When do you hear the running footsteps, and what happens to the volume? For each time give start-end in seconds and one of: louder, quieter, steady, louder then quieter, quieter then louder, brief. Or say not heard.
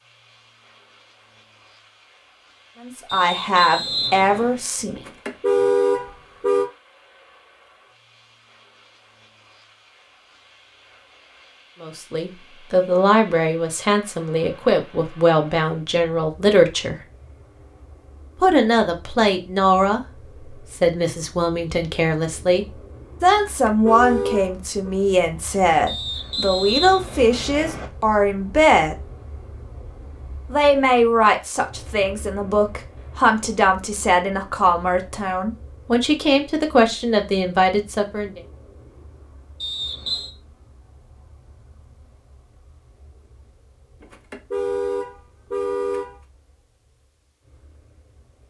not heard.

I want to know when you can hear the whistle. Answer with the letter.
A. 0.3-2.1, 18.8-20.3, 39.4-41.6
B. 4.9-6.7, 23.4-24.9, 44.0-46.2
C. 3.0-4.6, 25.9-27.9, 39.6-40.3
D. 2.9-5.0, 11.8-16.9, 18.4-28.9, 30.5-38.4
C.